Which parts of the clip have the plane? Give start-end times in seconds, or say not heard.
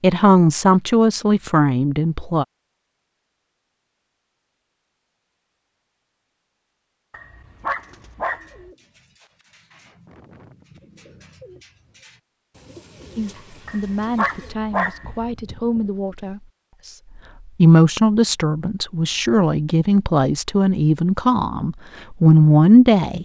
not heard.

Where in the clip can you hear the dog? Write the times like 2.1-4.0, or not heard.
7.1-8.7, 13.7-15.3.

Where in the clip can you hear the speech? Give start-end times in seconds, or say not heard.
0.0-2.5, 13.2-23.1.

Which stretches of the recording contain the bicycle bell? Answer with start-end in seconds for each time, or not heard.
not heard.